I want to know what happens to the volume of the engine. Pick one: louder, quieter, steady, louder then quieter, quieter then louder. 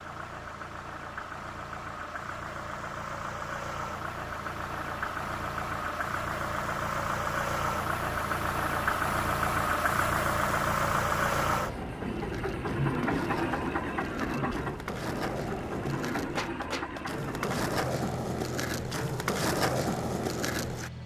louder then quieter.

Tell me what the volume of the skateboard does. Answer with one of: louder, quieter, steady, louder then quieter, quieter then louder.
louder.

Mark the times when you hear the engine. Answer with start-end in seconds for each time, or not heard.
0.0-21.0.